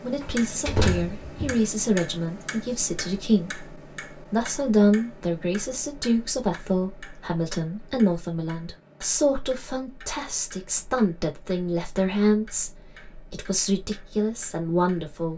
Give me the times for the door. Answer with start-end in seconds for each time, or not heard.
0.2-1.6, 10.6-11.0.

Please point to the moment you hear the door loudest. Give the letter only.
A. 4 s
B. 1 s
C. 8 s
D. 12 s
B.